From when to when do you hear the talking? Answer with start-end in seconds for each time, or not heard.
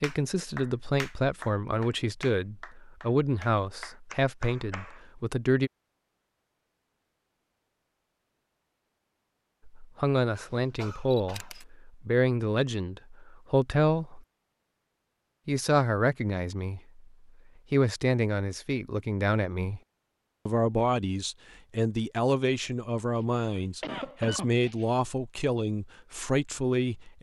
0.0-5.7, 9.7-14.2, 15.4-17.0, 17.7-19.8, 20.4-27.1.